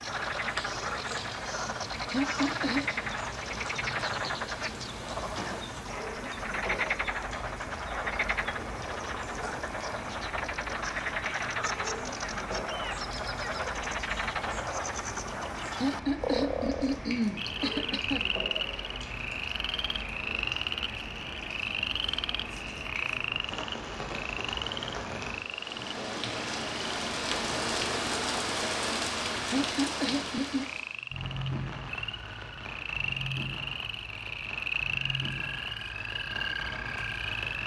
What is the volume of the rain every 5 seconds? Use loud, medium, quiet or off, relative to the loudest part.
medium, medium, medium, medium, medium, loud, medium, medium.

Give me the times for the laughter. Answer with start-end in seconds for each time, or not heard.
2.1-3.0, 15.8-18.2, 29.5-30.7.